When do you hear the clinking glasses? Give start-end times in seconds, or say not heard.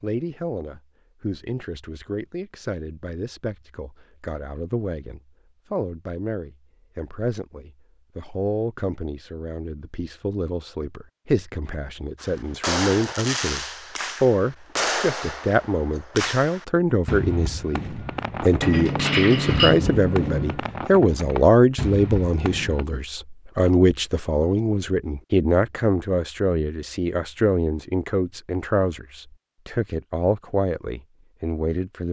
18.6-20.6.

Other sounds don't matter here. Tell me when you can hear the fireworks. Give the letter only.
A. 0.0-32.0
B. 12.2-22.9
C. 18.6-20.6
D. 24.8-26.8
B.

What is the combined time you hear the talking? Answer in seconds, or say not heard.
32 s.